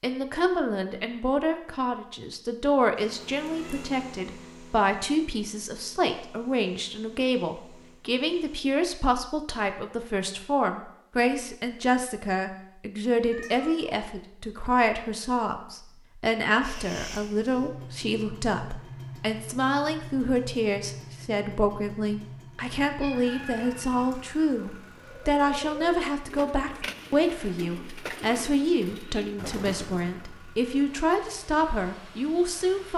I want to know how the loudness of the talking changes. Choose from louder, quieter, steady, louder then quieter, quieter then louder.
steady.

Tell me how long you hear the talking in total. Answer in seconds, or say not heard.
33 s.